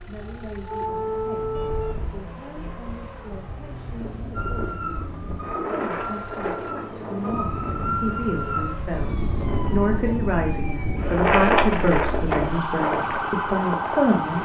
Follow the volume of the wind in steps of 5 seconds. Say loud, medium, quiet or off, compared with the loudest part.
quiet, medium, loud.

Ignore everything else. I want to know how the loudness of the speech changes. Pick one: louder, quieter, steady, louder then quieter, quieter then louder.
louder.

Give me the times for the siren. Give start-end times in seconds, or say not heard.
0.0-1.9, 4.3-14.4.